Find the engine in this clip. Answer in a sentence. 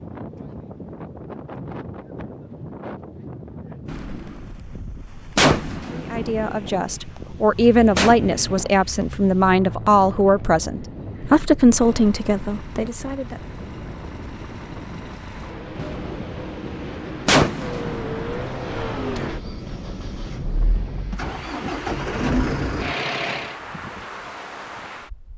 You can hear the engine from 7.7 to 23.6 s.